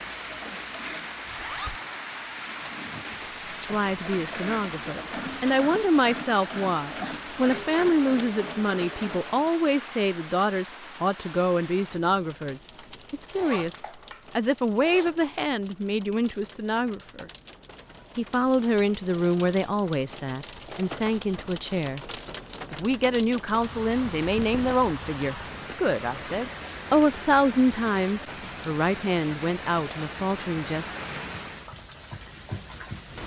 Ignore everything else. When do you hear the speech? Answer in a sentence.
The speech can be heard from 3.6 to 17.3 s, from 18.1 to 22.0 s and from 22.7 to 30.9 s.